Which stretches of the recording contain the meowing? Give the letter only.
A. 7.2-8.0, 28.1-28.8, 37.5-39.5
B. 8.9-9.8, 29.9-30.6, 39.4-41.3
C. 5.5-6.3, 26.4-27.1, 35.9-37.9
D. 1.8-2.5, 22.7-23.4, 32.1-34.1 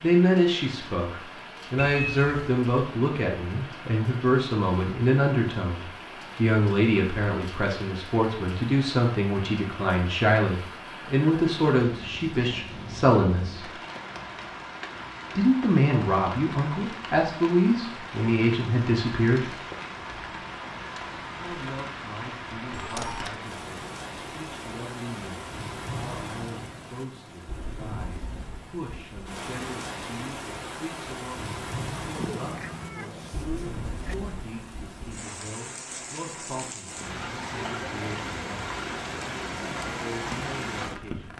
D.